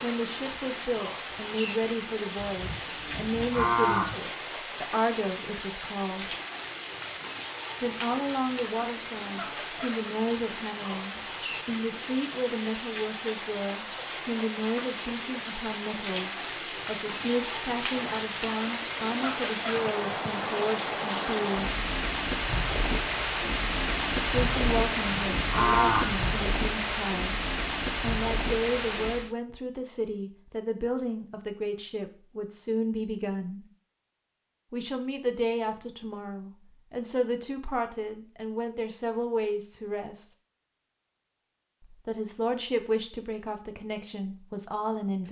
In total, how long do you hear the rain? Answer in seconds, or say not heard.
29 s.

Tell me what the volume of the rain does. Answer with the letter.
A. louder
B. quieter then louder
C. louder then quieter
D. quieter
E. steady
A.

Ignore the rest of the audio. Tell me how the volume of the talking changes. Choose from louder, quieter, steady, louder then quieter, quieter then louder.
steady.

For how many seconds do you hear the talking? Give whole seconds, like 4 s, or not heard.
39 s.